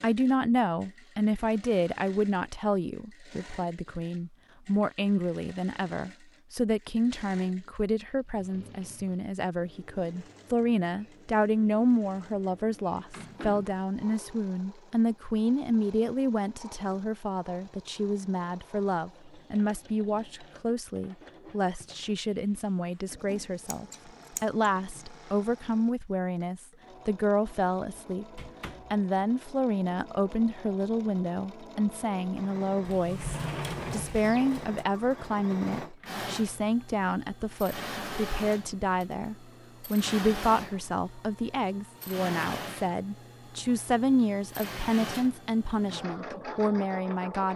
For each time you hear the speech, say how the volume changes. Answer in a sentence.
The speech can be heard from 0.0 to 47.5 s, at a steady volume.